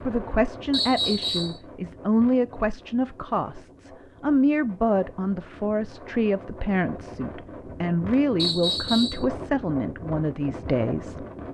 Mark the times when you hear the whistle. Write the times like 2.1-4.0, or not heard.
0.7-1.6, 8.3-9.2.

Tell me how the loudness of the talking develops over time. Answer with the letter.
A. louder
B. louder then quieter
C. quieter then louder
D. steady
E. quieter
D.